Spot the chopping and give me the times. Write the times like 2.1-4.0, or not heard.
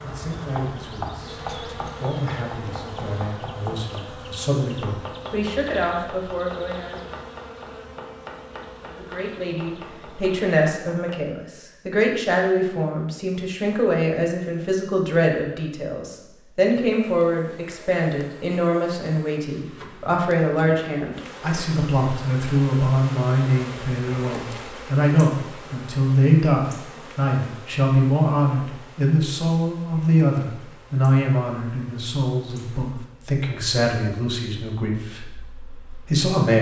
0.4-11.2.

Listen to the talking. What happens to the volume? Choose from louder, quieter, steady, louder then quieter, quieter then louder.
louder.